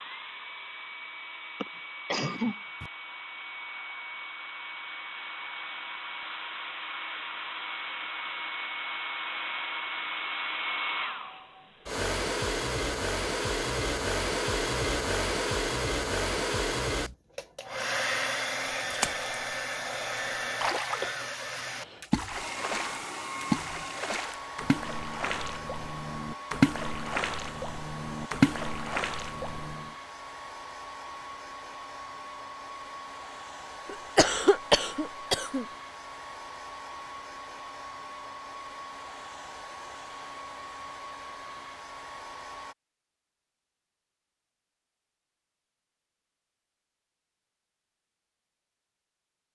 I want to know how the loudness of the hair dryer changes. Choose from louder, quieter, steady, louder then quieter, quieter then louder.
louder then quieter.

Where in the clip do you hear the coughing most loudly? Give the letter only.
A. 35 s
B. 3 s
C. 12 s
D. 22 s
A.